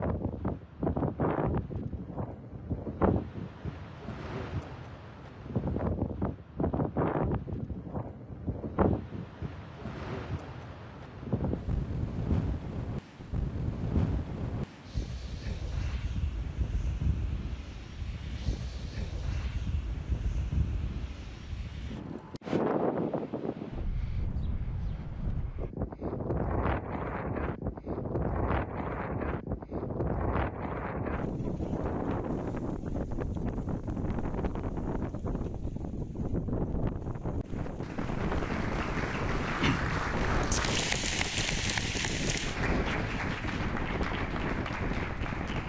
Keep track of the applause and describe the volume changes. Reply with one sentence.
The volume of the applause goes up, then down.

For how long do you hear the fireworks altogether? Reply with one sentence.
The fireworks can't be heard in this clip.